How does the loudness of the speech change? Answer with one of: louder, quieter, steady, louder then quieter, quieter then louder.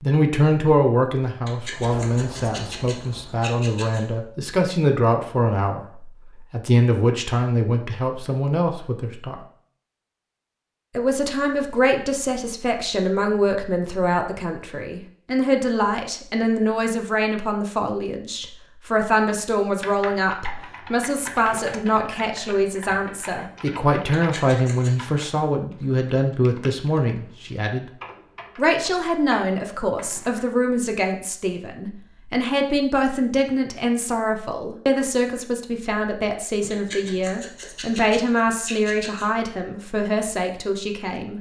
steady.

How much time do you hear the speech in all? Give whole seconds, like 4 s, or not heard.
39 s.